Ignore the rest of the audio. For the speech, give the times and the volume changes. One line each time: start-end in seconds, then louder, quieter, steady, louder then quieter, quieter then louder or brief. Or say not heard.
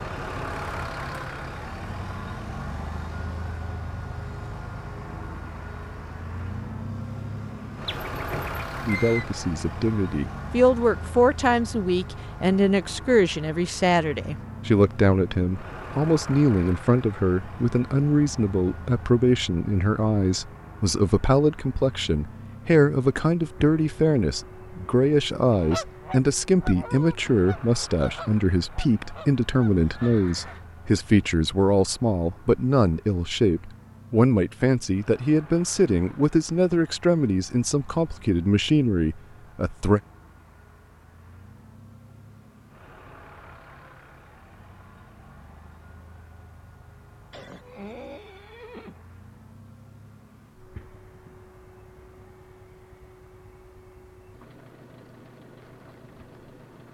8.8-40.0 steady.